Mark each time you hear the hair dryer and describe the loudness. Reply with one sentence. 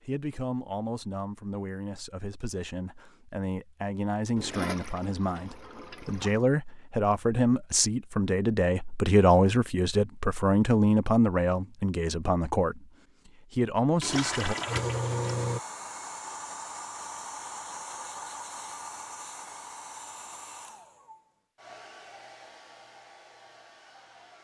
You can hear the hair dryer from 14.1 to 24.3 s, getting quieter.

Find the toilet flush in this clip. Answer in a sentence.
You can hear the toilet flush from 4.3 to 6.4 s and from 14.0 to 15.6 s.